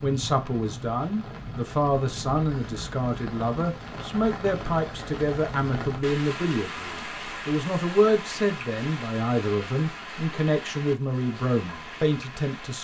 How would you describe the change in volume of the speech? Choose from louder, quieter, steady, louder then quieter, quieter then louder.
steady.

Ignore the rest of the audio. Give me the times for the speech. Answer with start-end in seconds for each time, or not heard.
0.0-12.7.